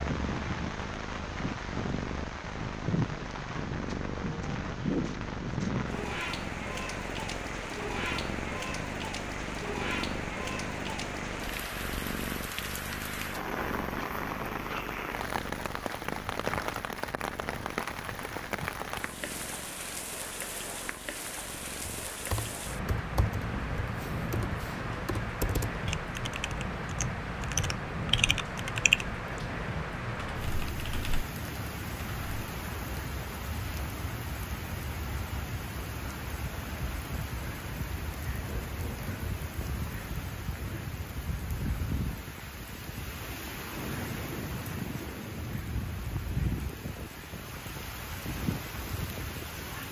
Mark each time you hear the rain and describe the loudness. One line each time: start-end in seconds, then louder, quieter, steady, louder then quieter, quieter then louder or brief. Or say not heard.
0.0-49.8 steady.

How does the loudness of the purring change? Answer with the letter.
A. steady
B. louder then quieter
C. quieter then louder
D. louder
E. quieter
E.